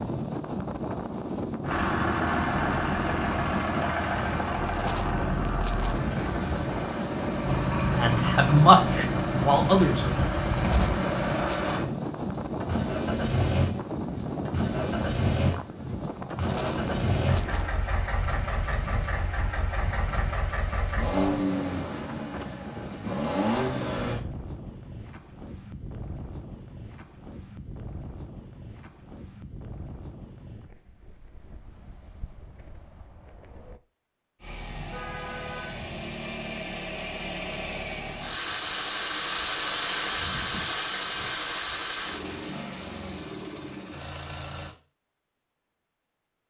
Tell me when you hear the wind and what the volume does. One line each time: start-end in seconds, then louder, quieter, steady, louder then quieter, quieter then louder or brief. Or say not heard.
0.0-33.8 quieter.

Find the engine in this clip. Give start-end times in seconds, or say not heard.
1.6-24.2, 34.4-44.8.